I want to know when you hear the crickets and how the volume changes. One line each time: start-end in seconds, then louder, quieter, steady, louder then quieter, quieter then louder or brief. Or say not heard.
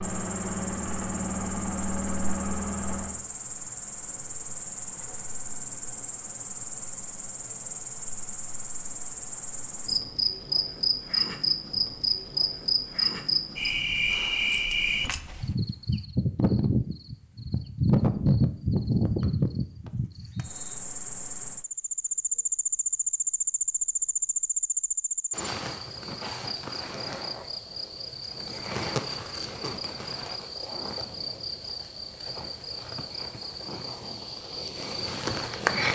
0.0-35.9 louder then quieter.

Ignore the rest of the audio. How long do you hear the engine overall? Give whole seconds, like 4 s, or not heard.
3 s.